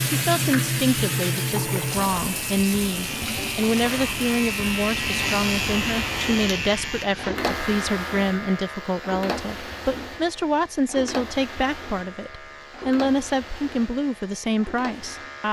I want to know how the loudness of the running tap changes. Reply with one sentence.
The volume of the running tap goes down.